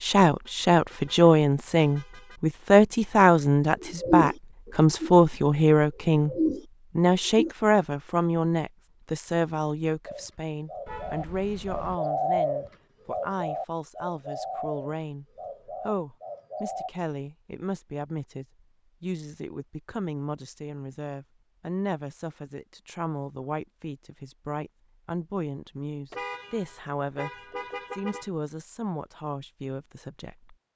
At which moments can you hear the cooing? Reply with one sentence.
The cooing can be heard from 3.8 to 7.5 s and from 10.1 to 16.9 s.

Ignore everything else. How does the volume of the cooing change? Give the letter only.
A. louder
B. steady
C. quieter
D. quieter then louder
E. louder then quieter
C.